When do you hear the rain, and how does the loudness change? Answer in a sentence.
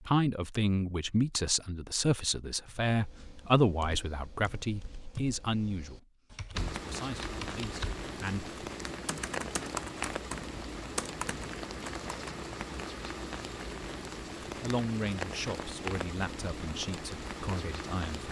The rain can be heard from 6.5 to 18.2 s, at a steady volume.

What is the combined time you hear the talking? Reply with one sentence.
The talking can be heard for 12 seconds in total.